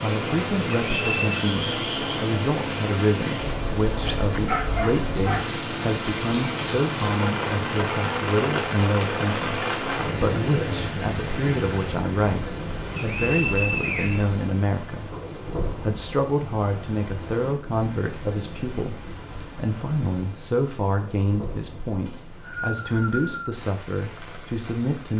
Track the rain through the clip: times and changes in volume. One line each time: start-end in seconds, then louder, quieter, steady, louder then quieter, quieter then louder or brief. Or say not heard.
0.0-25.1 quieter.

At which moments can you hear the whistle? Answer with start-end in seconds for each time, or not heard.
0.8-1.4, 12.9-14.2, 22.1-23.6.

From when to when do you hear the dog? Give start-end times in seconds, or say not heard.
4.0-5.5.